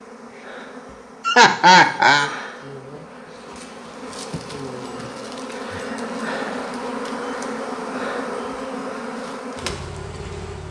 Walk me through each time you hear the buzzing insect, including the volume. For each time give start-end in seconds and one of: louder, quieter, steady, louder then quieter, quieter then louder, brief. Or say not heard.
0.0-10.6 louder.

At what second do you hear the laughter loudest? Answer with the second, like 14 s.
2 s.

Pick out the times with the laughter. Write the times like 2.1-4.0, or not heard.
1.2-2.3, 5.8-6.6.